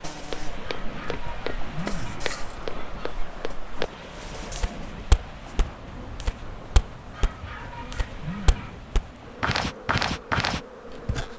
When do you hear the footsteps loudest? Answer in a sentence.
The volume of the footsteps peaks at 10 seconds.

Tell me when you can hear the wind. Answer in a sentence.
The wind can be heard from 0.0 to 11.3 s.